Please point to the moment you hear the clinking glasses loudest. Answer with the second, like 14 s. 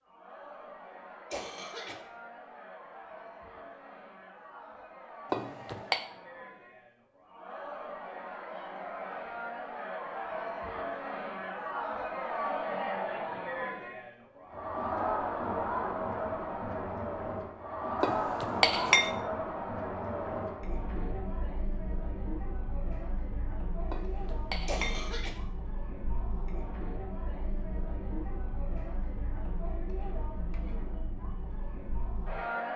19 s.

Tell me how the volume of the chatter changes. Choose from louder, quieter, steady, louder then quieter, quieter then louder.
louder then quieter.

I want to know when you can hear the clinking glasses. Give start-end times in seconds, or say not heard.
5.3-6.0, 18.0-19.1, 23.9-25.1.